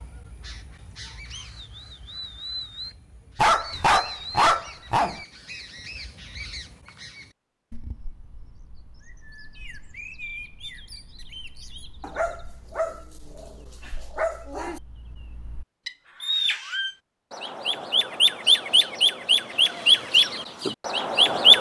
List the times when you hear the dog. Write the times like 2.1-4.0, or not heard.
3.4-5.2, 12.0-14.8.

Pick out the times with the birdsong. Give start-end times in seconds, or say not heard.
0.0-21.5.